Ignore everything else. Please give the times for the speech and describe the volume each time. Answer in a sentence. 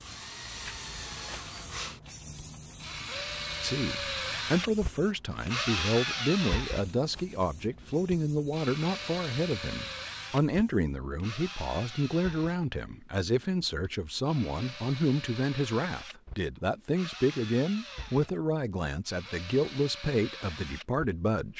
The speech can be heard from 3.6 to 21.5 s, at a steady volume.